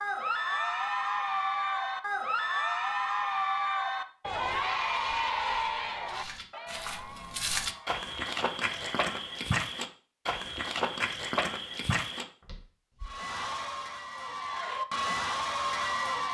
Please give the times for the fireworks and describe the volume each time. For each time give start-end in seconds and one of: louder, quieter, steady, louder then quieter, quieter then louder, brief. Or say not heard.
not heard.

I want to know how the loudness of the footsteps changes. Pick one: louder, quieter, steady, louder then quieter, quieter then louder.
louder.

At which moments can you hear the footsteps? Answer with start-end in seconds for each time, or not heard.
4.2-13.2.